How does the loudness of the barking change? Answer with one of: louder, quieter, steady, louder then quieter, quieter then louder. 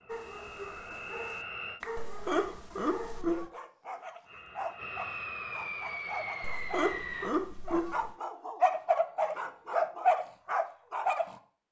louder.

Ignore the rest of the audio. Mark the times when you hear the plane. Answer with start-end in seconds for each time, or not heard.
0.0-1.8, 4.2-7.3.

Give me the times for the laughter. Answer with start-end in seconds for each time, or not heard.
1.9-3.5, 6.4-8.1.